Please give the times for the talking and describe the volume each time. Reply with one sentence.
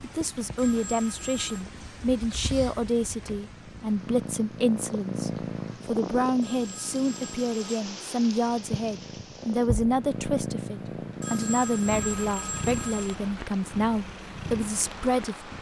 The talking can be heard from 0.0 to 15.5 s, at a steady volume.